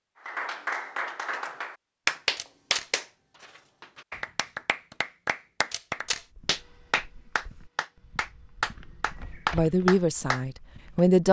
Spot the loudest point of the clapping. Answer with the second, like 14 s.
2 s.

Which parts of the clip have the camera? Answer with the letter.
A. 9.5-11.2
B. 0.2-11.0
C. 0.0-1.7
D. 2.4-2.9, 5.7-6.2
D.